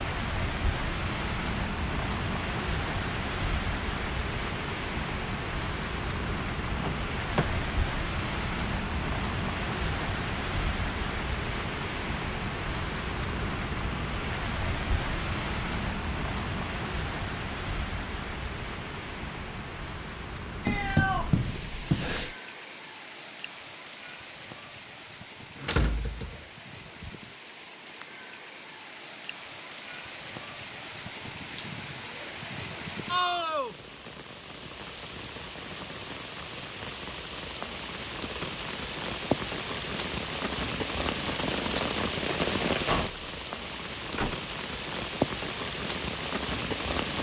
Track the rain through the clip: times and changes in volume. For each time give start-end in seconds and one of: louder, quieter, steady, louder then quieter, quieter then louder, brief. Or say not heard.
0.0-47.1 quieter then louder.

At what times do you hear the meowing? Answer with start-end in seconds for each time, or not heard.
20.6-22.4.